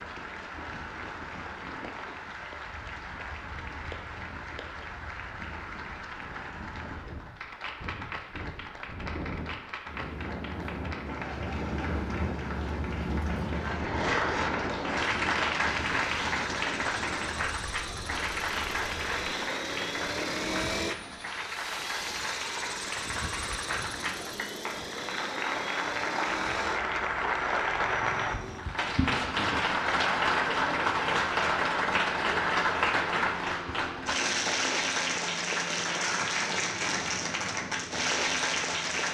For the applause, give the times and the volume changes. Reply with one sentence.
You can hear the applause from 0.0 to 39.0 s, getting louder.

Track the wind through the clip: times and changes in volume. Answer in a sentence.
You can hear the wind from 0.0 to 21.6 s, getting louder then quieter.